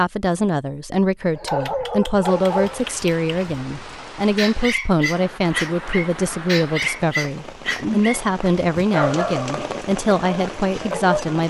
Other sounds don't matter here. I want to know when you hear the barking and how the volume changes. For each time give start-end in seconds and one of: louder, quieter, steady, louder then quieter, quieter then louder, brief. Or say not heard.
1.3-11.3 steady.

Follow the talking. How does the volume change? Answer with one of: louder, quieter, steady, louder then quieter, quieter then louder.
steady.